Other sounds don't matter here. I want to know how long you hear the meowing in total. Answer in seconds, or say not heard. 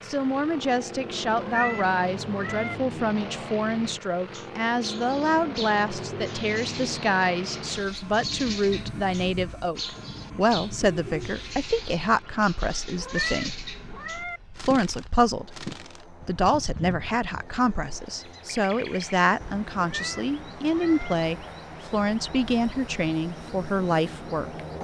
4 s.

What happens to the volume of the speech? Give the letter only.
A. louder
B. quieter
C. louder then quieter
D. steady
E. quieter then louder
D.